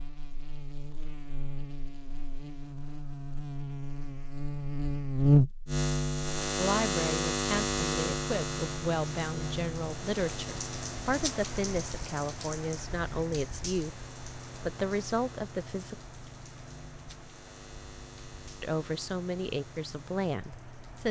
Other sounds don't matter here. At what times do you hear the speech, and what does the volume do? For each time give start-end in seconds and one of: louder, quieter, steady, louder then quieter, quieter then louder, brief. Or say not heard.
6.5-15.9 steady
18.6-21.0 brief.